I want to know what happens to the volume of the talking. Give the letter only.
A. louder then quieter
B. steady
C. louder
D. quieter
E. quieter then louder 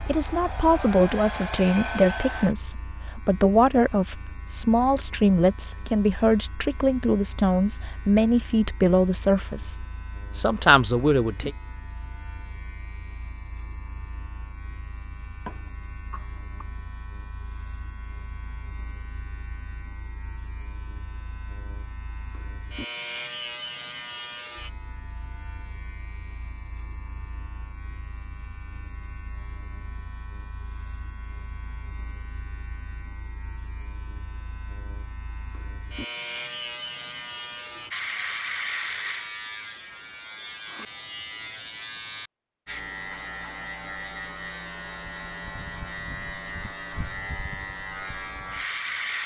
B.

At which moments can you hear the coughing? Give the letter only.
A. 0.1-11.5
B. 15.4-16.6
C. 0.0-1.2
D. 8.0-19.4
B.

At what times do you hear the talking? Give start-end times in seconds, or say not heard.
0.1-11.5.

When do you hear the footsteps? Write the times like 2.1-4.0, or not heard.
not heard.